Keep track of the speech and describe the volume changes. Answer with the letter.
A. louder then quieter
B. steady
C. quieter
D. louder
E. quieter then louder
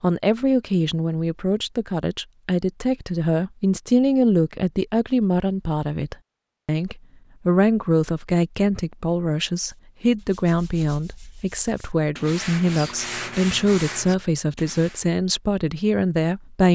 B.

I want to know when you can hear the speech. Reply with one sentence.
You can hear the speech from 0.0 to 16.7 s.